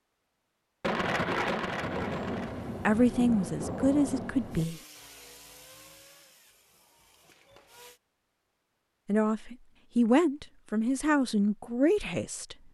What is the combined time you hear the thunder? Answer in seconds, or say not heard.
4 s.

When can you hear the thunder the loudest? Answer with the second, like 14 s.
1 s.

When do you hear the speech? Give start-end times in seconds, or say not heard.
2.9-4.8, 9.1-12.6.